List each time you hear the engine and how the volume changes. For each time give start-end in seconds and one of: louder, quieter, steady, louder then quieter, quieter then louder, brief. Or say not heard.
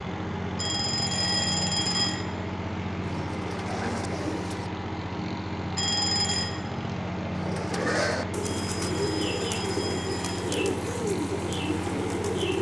0.0-12.5 steady.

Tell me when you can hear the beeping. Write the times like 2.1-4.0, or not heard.
0.6-2.2, 5.8-6.5, 8.4-10.4.